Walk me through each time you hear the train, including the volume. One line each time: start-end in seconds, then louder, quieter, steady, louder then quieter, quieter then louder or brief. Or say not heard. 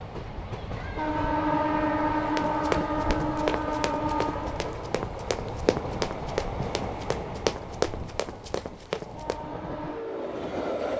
0.0-10.9 quieter.